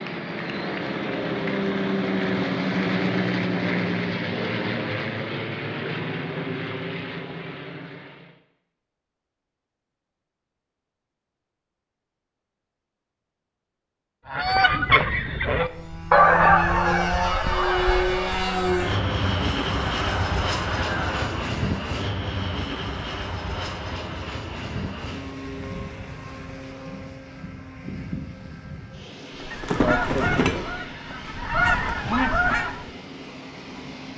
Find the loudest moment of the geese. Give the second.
16 s.